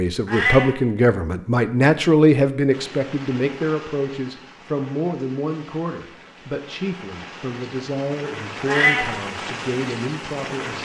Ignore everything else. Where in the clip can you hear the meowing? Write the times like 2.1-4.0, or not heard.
0.2-0.8, 8.7-9.1.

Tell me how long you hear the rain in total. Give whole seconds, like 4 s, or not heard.
8 s.